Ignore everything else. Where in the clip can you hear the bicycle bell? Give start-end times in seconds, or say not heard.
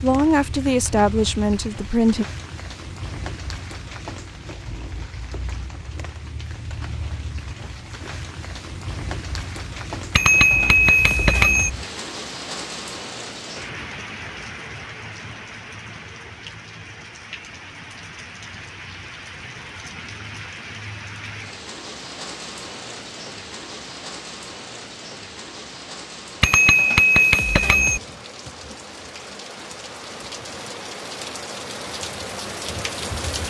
10.2-11.7, 26.4-28.0.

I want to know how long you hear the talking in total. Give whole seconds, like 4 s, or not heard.
2 s.